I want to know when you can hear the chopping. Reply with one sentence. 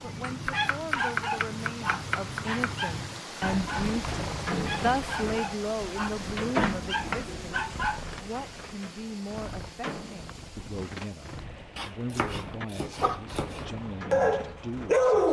The chopping can be heard from 0.2 to 2.9 s, from 6.2 to 7.8 s and from 11.8 to 13.7 s.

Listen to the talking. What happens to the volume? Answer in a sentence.
The volume of the talking goes up, then down.